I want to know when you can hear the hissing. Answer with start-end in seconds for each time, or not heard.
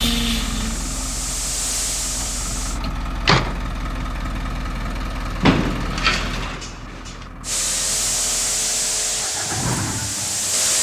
0.2-2.8, 7.4-10.7.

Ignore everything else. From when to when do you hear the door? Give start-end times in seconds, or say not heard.
2.8-3.6, 5.4-7.2.